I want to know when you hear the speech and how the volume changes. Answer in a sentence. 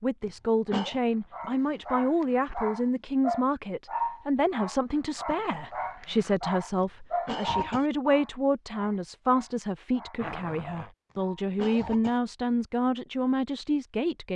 You can hear the speech from 0.0 to 14.3 s, at a steady volume.